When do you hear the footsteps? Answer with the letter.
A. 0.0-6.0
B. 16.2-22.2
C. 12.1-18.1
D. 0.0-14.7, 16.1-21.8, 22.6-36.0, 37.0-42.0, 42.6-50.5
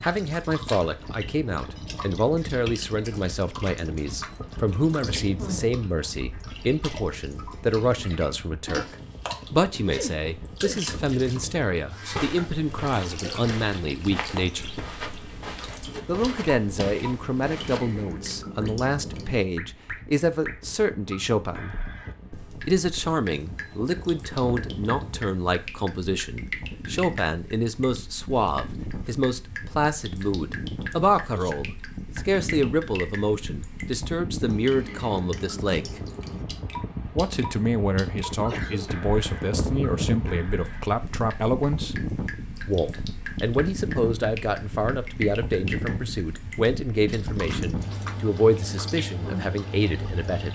C.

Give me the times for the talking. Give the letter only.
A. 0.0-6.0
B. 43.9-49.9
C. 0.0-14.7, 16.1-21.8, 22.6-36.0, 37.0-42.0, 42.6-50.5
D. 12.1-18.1
C.